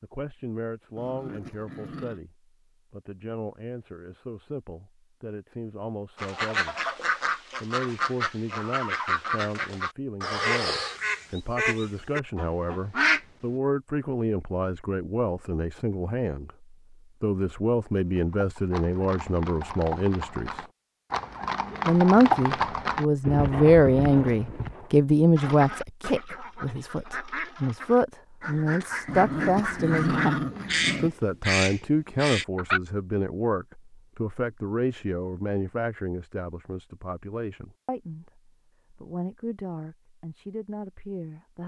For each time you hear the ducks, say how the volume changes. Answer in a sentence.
The ducks can be heard from 6.2 to 13.2 s, at a steady volume; and from 25.4 to 32.8 s, getting louder.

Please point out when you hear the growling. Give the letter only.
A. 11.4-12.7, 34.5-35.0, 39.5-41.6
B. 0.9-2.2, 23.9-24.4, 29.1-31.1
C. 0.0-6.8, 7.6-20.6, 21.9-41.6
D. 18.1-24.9
B.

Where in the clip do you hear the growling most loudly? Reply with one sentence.
The loudest moment of the growling is at 30 seconds.